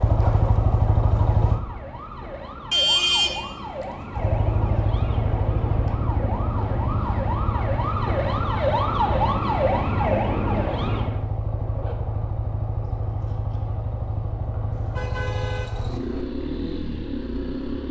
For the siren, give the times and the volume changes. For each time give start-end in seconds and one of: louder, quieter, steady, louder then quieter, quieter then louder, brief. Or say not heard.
0.0-11.2 louder.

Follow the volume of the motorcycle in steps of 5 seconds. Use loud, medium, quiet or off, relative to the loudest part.
loud, medium, medium, medium.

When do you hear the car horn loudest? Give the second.
3 s.